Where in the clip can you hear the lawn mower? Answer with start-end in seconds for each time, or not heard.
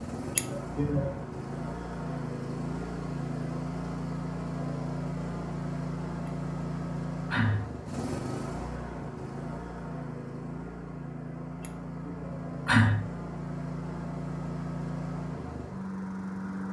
0.0-16.6.